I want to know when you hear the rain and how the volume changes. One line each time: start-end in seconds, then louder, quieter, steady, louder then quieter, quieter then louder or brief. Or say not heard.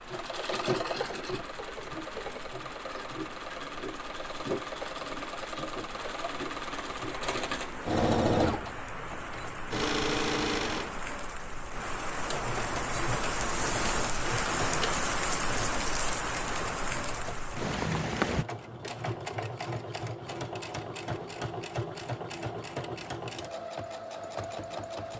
0.0-18.4 louder.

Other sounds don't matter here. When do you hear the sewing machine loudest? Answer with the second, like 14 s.
8 s.